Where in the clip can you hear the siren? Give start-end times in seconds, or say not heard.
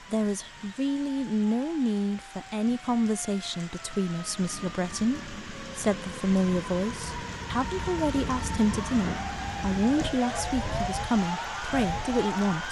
0.0-12.6.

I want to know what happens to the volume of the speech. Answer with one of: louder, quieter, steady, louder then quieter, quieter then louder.
steady.